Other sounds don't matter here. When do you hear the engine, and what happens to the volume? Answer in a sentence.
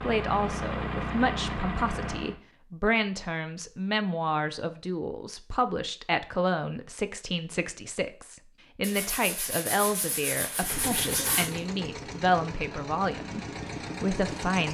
You can hear the engine briefly from 0.0 to 2.4 s; and from 10.5 to 14.6 s, at a steady volume.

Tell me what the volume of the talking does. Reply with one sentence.
The loudness of the talking stays about the same.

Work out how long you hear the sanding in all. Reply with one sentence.
You can hear the sanding for 3 seconds altogether.